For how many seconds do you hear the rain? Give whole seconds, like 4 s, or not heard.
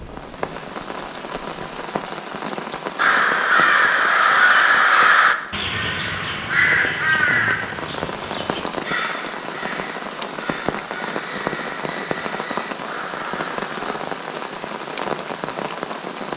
16 s.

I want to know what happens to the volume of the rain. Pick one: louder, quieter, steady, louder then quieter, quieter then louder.
quieter then louder.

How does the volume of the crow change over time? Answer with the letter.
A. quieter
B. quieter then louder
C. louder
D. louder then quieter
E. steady
A.